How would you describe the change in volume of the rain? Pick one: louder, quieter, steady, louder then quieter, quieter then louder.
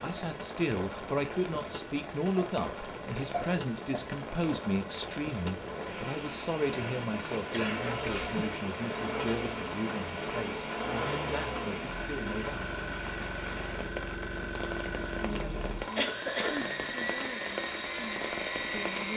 steady.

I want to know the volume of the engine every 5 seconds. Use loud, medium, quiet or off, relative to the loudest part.
off, loud, loud, loud.